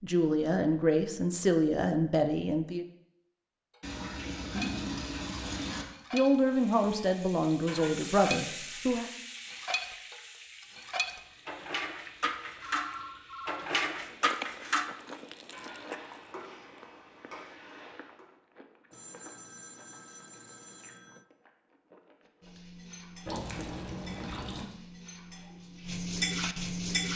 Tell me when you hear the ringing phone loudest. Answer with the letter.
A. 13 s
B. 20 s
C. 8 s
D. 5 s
A.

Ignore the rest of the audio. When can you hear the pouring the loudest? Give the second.
5 s.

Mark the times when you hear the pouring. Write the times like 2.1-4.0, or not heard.
3.8-5.8, 23.2-24.6.